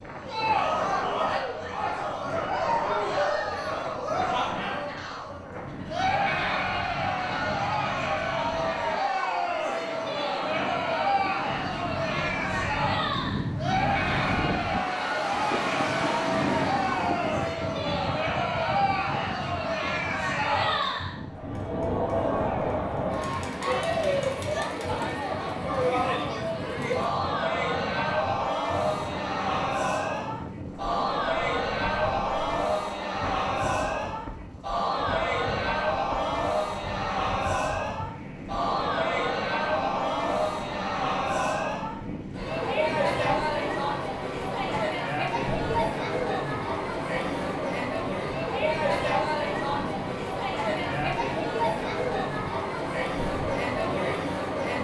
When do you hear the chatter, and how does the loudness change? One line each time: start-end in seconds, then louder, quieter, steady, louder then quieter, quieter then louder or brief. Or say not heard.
0.1-54.7 steady.